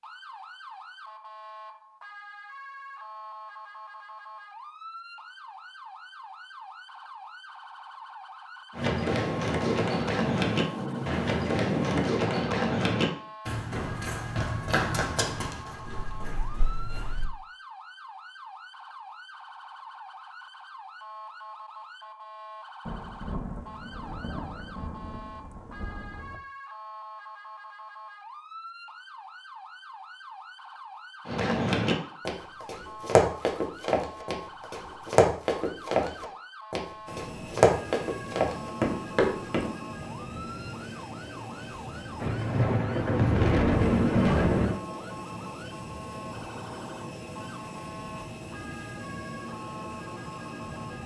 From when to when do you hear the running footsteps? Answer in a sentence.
The running footsteps can be heard from 8.7 to 17.2 s and from 31.2 to 39.8 s.